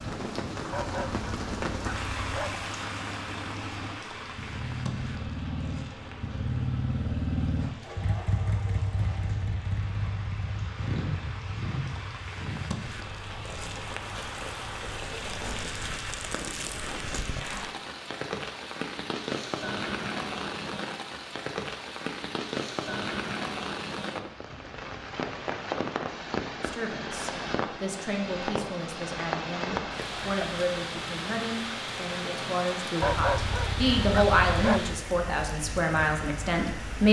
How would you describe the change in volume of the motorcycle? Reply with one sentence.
The volume of the motorcycle goes up, then down.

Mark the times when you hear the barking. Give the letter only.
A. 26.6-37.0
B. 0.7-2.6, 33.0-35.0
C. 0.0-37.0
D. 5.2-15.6
B.